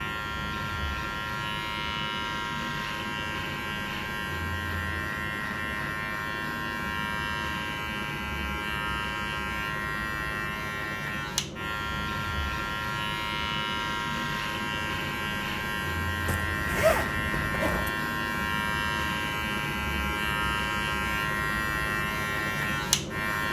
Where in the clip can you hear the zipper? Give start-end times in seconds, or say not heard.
16.2-17.9.